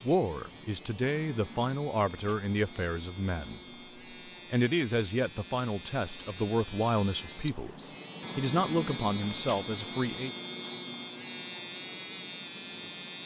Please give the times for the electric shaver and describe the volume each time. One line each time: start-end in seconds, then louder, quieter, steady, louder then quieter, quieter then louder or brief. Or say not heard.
0.0-13.2 louder.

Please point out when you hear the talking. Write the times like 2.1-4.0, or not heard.
0.0-3.6, 4.5-10.3.